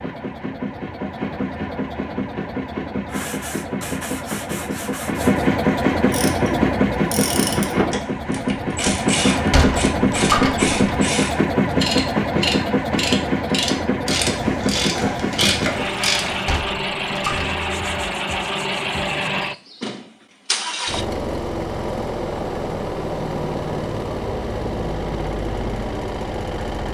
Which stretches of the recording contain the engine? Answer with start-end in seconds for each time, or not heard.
0.0-26.9.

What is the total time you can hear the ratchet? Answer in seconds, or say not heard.
10 s.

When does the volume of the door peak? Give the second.
10 s.